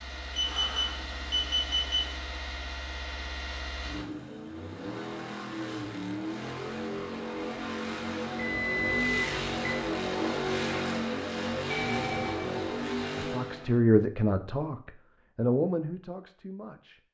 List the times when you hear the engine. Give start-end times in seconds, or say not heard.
0.0-13.8.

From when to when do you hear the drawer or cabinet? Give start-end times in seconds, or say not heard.
not heard.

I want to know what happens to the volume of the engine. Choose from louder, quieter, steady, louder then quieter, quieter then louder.
louder.